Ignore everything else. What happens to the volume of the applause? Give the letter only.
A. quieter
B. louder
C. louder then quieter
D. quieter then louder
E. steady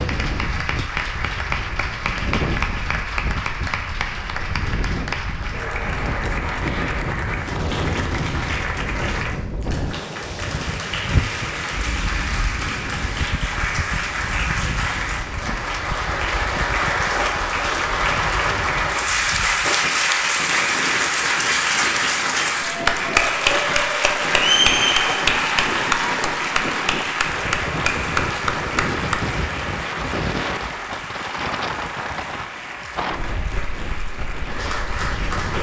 C.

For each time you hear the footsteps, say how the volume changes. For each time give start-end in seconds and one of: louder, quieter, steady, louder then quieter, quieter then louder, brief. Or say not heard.
not heard.